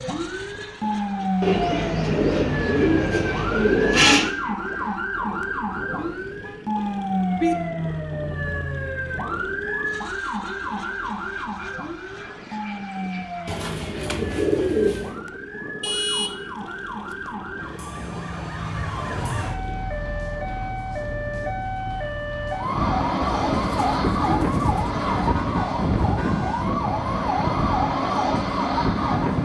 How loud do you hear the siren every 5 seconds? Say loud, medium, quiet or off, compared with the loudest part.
loud, loud, medium, medium, loud, loud.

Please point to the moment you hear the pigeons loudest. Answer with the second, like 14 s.
4 s.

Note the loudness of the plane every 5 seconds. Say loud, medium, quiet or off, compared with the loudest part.
quiet, quiet, quiet, quiet, loud, loud.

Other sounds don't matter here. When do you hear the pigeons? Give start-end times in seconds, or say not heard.
1.4-4.3, 13.4-15.2, 23.2-25.4.